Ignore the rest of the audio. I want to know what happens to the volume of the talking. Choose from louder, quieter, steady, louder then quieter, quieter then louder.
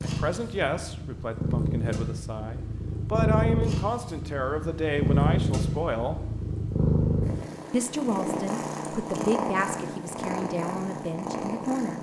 steady.